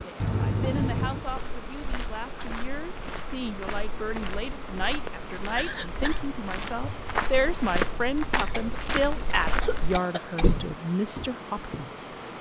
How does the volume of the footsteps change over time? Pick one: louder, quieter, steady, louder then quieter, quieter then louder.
louder.